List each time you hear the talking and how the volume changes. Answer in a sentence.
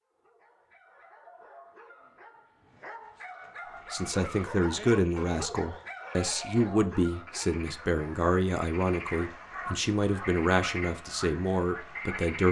The talking can be heard from 3.9 to 12.4 s, at a steady volume.